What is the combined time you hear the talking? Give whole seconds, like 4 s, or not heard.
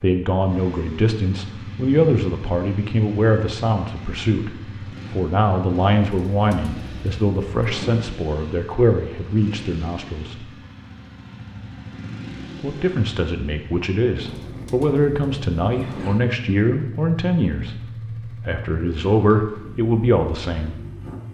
19 s.